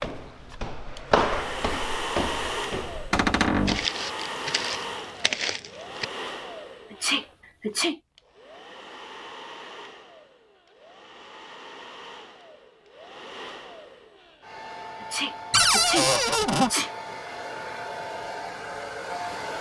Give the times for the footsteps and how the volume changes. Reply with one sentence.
You can hear the footsteps from 0.0 to 6.0 s, getting quieter then louder.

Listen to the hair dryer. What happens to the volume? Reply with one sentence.
The loudness of the hair dryer goes down, then up.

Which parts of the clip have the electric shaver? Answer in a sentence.
You can't hear the electric shaver here.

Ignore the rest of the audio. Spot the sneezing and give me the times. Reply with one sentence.
The sneezing can be heard from 6.9 to 8.0 s and from 15.0 to 16.9 s.